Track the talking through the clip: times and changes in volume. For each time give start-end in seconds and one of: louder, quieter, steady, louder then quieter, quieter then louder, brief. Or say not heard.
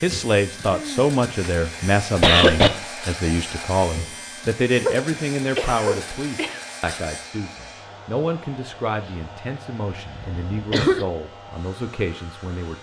0.0-12.7 quieter.